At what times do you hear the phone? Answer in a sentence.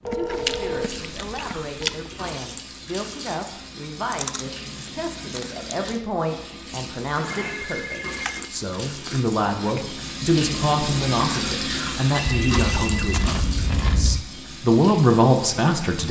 You can hear the phone from 0.0 to 0.9 s, from 7.2 to 8.4 s and from 12.1 to 13.2 s.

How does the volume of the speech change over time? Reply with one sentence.
The loudness of the speech goes up.